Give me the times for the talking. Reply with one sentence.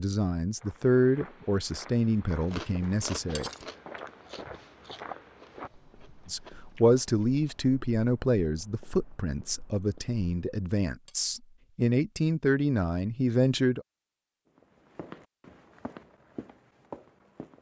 You can hear the talking from 0.0 to 3.5 s and from 6.2 to 13.8 s.